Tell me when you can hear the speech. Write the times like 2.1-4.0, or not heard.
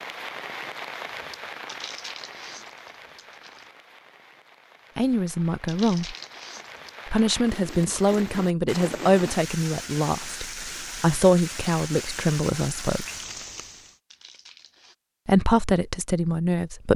5.0-6.2, 7.0-13.1, 15.2-16.9.